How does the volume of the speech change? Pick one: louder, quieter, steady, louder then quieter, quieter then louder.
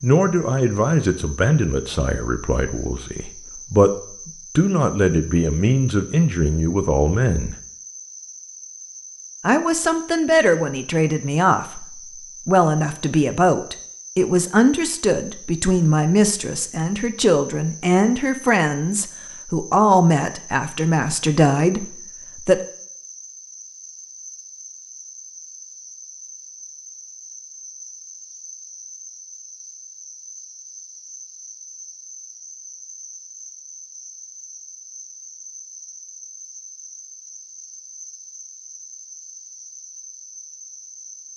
steady.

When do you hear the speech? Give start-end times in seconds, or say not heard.
0.0-3.9, 4.5-7.5, 9.4-22.6.